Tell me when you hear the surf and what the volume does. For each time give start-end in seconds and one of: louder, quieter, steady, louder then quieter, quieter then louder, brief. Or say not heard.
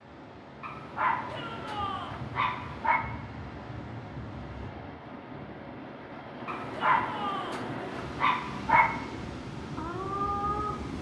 0.0-10.9 louder.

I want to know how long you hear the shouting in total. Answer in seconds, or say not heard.
2 s.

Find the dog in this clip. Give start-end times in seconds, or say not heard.
0.6-3.0, 6.5-8.9.